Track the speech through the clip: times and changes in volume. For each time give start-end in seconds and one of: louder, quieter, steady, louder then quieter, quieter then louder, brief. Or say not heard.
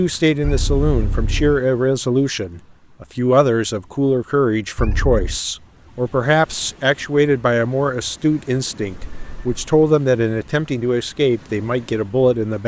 0.0-12.6 steady.